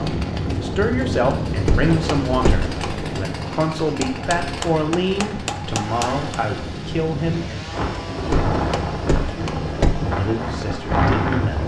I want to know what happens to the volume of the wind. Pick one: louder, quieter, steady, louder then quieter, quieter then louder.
quieter then louder.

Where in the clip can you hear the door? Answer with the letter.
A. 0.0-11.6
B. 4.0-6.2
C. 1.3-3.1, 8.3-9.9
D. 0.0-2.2
C.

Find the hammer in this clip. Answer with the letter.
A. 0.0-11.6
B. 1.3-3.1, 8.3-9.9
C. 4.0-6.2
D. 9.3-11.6
C.